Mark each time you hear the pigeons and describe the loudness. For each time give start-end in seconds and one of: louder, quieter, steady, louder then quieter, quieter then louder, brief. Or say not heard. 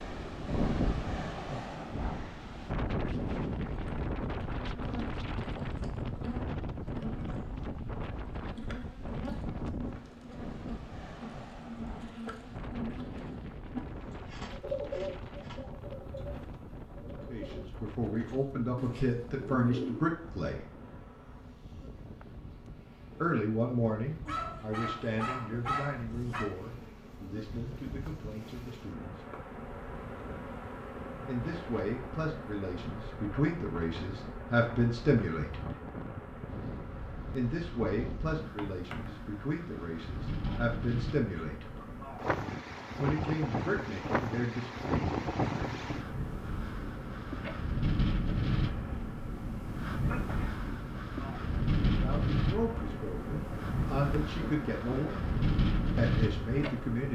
14.4-20.1 quieter then louder.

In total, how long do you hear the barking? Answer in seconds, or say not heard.
2 s.